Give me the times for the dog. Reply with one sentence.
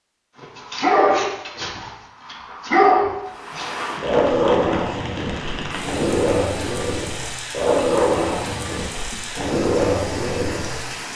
You can hear the dog from 0.4 to 10.8 s.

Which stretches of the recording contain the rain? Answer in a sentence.
The rain can be heard from 3.2 to 11.1 s.